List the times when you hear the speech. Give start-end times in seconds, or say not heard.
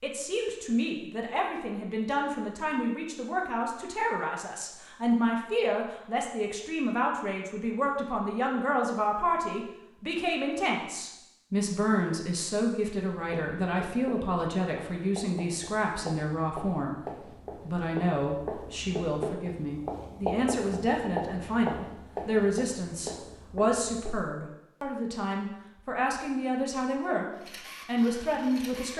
0.0-16.9, 17.6-28.9.